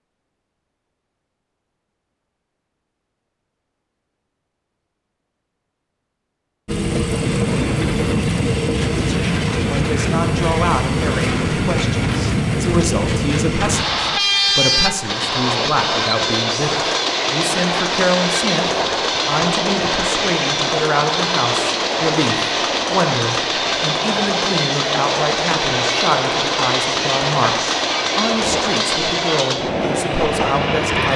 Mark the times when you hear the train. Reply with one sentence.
The train can be heard from 6.7 to 31.1 s.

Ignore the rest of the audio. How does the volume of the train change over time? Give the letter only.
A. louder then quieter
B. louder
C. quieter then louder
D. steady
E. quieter
D.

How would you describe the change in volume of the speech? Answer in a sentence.
The volume of the speech stays about the same.